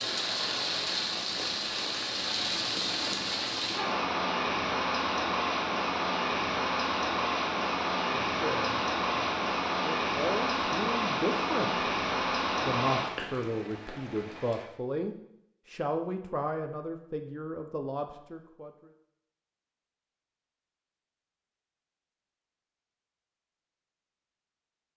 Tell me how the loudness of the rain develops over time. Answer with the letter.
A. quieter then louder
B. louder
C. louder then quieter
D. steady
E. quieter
D.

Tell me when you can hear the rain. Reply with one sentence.
You can hear the rain from 0.0 to 14.7 s.